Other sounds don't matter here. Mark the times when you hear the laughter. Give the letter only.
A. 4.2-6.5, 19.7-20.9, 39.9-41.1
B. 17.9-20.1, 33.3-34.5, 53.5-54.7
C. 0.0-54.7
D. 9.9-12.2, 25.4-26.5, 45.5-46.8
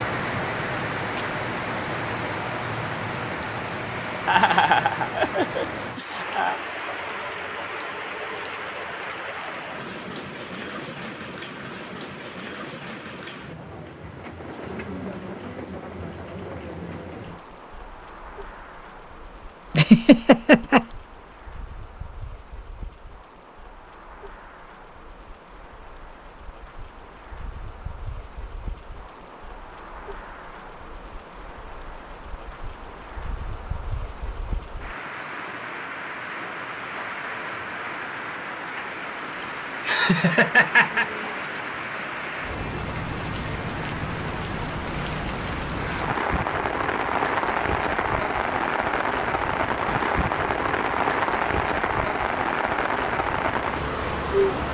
A.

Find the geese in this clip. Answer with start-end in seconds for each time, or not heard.
not heard.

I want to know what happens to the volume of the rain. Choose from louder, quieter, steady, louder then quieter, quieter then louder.
quieter then louder.